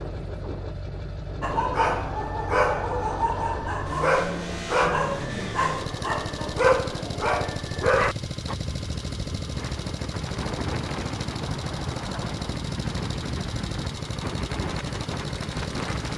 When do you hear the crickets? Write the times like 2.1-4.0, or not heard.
not heard.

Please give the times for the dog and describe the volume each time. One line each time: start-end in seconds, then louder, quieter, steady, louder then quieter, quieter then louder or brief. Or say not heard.
1.4-8.6 steady.